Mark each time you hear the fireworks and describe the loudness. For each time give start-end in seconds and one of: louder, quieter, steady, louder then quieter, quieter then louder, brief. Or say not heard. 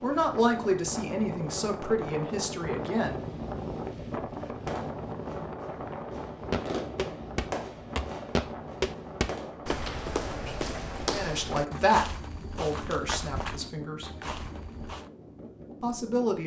4.5-9.7 louder then quieter.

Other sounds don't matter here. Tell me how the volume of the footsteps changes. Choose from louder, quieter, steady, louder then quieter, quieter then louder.
quieter.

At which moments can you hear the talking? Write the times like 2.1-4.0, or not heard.
0.0-3.2, 11.1-14.2, 15.8-16.4.